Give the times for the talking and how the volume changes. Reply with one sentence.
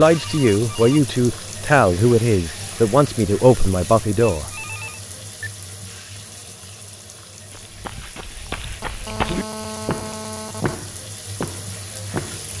You can hear the talking from 0.0 to 4.5 s, at a steady volume.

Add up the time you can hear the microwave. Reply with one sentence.
You can't hear the microwave here.